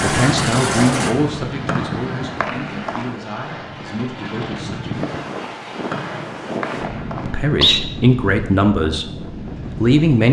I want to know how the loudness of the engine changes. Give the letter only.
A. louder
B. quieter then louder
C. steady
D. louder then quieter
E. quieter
E.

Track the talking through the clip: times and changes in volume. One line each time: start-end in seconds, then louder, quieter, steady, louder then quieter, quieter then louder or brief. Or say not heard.
0.0-5.0 quieter
7.2-10.2 brief.